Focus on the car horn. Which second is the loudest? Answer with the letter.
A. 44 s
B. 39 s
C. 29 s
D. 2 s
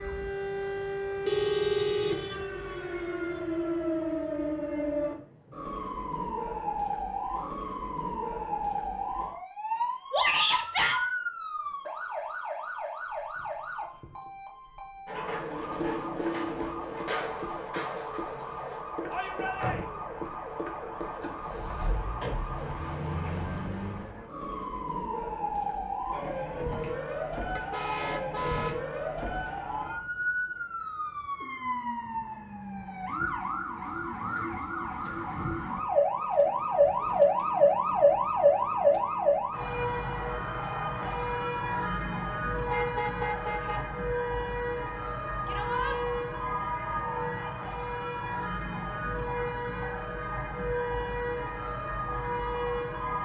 D.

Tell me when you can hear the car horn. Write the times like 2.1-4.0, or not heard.
1.2-2.5, 27.6-28.8, 42.7-43.9.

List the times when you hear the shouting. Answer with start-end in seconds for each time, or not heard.
10.1-11.1, 19.1-19.9, 45.5-46.0.